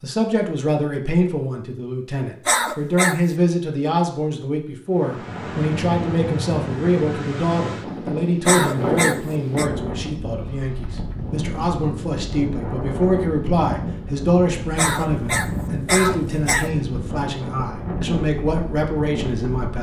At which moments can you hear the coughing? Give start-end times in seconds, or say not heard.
2.5-3.1, 8.4-9.7, 14.8-16.7.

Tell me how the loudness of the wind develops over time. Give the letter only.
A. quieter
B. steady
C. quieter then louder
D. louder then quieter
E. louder
B.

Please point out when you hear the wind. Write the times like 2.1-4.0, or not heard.
5.0-19.7.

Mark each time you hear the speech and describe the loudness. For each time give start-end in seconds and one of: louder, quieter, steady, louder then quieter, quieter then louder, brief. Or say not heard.
0.0-19.7 steady.